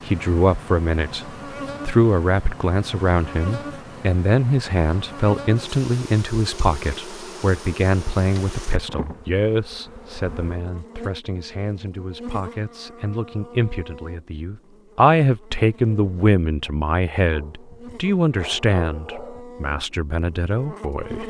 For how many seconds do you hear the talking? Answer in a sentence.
The talking can be heard for 21 seconds in total.